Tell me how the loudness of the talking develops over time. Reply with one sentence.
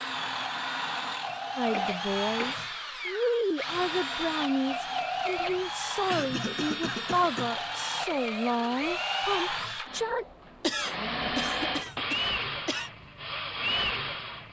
The loudness of the talking stays about the same.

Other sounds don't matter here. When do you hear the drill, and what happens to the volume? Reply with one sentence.
The drill can be heard from 0.0 to 14.4 s, at a steady volume.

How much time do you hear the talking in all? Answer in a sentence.
You can hear the talking for 9 seconds altogether.